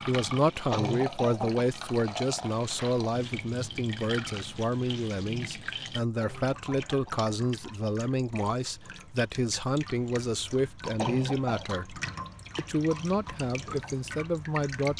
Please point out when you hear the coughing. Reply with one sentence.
The coughing can be heard from 0.7 to 1.7 s, from 6.2 to 7.3 s and from 10.9 to 11.8 s.